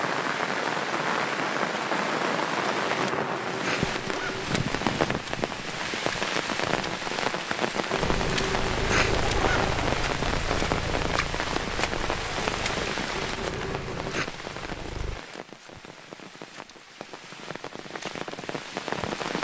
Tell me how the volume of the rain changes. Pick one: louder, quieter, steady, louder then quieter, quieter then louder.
quieter.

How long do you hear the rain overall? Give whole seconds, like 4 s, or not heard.
19 s.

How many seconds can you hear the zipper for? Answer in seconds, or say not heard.
5 s.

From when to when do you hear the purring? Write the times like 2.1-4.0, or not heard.
8.0-15.2.